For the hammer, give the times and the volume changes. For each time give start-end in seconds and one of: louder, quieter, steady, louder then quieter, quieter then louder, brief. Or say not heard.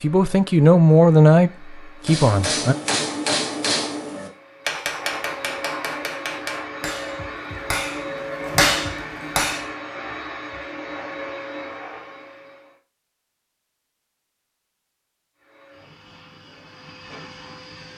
2.0-9.7 quieter then louder.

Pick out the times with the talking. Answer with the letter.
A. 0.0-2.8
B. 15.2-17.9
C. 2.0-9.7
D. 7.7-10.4
A.